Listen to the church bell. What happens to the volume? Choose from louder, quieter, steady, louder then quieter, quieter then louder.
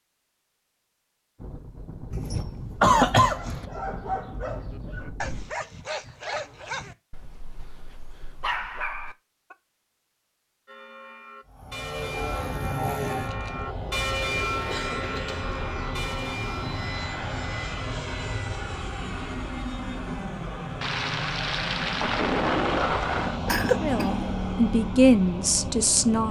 louder then quieter.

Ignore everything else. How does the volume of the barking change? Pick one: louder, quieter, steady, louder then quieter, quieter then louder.
quieter then louder.